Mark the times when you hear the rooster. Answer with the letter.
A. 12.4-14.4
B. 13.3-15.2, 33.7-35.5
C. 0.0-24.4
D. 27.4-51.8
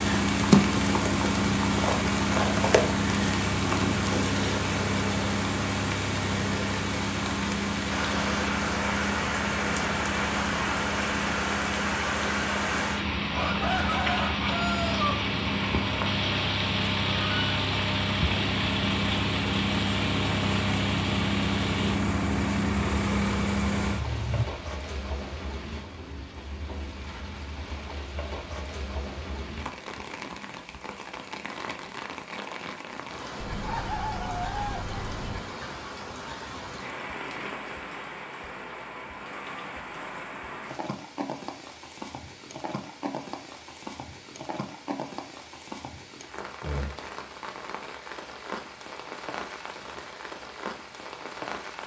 B.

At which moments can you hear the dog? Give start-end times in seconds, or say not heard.
33.4-35.4.